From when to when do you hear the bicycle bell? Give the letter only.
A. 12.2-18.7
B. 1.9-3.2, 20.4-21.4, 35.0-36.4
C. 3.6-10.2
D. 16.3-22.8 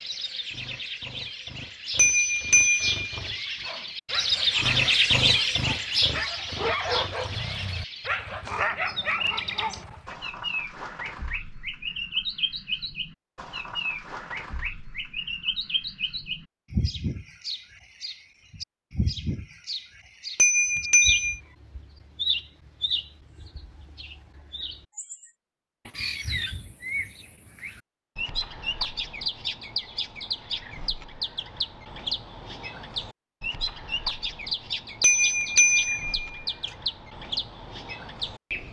B.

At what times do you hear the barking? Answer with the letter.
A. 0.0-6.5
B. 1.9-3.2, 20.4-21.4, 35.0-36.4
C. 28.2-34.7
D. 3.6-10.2
D.